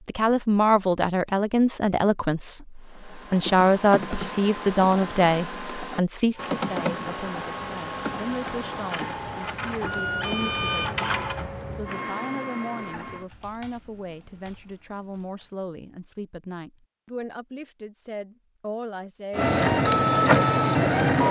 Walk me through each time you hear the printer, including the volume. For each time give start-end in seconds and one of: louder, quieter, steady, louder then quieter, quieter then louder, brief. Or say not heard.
6.3-13.2 louder then quieter
19.4-21.2 brief.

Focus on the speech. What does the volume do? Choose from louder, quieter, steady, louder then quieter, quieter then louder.
quieter.